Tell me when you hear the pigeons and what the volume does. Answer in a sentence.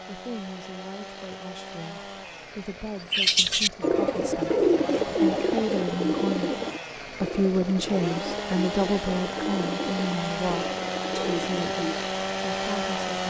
The pigeons can be heard from 3.0 to 12.1 s, getting quieter.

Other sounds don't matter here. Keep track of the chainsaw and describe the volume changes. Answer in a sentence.
The volume of the chainsaw goes up.